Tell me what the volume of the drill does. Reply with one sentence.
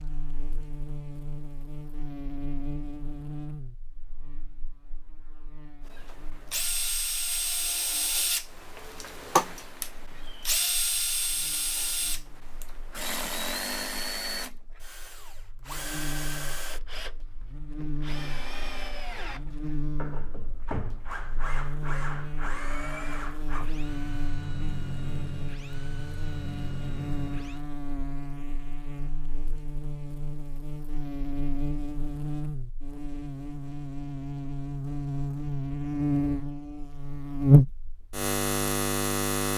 The loudness of the drill goes down.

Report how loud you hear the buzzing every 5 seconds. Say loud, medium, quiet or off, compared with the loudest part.
quiet, quiet, quiet, quiet, quiet, quiet, medium, loud.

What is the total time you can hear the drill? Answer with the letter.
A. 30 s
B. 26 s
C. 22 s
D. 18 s
C.